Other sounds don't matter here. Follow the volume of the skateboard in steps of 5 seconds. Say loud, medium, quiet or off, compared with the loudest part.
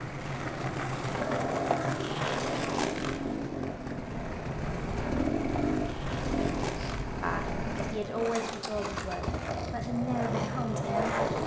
loud, medium, loud.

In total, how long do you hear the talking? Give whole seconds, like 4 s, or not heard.
4 s.